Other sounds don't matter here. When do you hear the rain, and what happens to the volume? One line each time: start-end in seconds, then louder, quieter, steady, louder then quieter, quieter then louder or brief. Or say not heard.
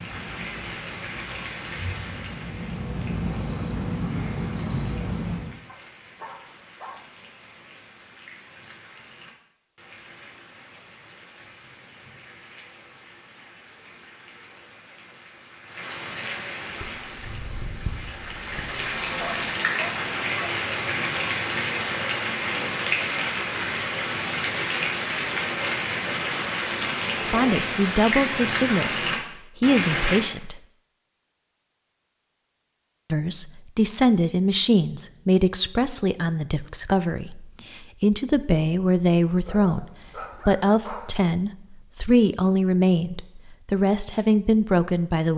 0.0-30.2 quieter then louder.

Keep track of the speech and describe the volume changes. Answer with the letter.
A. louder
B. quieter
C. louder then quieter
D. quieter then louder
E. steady
E.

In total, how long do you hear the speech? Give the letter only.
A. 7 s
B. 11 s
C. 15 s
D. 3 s
C.